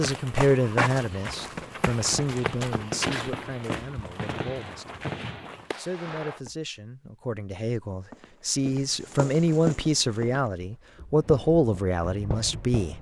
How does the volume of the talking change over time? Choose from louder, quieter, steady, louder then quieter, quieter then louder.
quieter then louder.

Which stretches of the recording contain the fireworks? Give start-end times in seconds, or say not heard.
2.0-6.4, 11.2-12.9.